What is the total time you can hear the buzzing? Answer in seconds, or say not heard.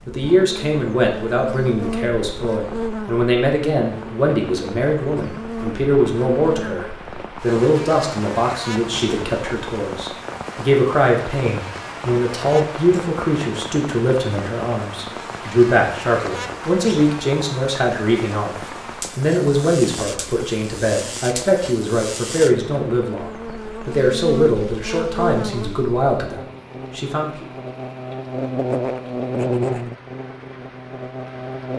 32 s.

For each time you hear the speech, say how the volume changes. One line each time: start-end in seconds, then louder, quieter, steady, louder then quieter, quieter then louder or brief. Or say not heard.
0.1-27.4 steady.